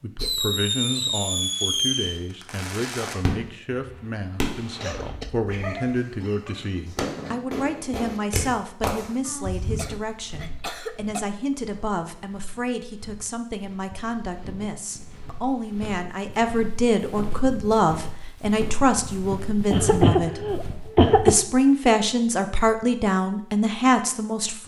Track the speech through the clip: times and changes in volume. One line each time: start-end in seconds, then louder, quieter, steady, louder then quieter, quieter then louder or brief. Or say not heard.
0.0-24.6 louder.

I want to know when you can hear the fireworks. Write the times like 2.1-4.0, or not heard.
0.2-9.8.